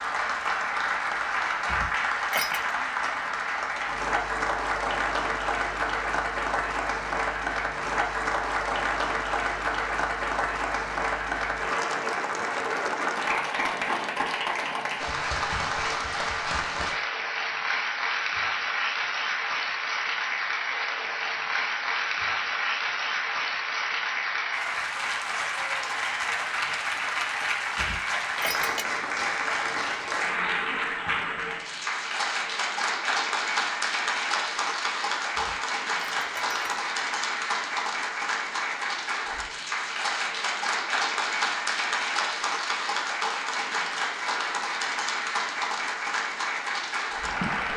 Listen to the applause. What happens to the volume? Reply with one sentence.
The volume of the applause stays about the same.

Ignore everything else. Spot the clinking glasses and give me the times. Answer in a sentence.
The clinking glasses can be heard from 1.6 to 2.7 s, from 27.8 to 28.9 s and from 35.4 to 36.8 s.